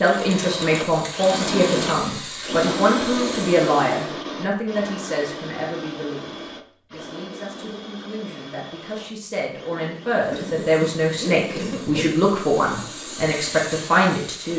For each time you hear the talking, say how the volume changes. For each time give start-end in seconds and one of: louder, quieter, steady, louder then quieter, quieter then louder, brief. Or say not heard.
0.0-14.5 quieter then louder.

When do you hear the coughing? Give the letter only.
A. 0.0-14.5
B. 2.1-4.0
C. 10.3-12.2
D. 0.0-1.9
C.